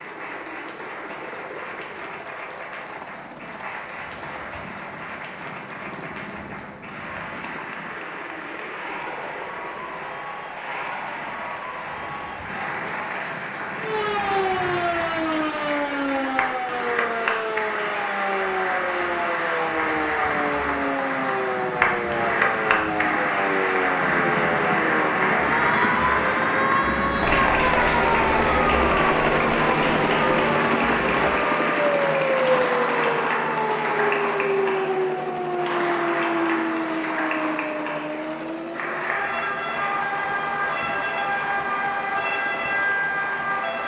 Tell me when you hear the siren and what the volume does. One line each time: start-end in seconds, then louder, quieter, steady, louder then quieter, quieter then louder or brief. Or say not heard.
13.8-43.8 steady.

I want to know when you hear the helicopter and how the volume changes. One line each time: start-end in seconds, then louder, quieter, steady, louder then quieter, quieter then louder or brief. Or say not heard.
0.0-43.8 louder then quieter.